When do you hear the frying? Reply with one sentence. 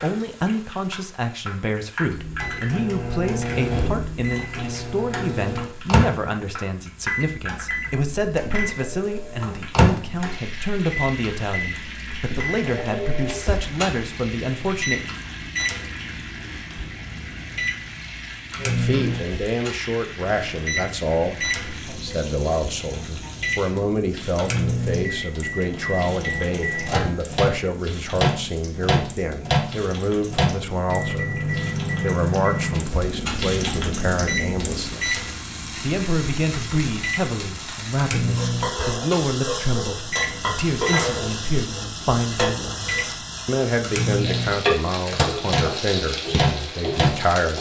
The frying can be heard from 0.0 to 47.5 s.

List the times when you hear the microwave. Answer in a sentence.
The microwave can be heard from 2.0 to 47.2 s.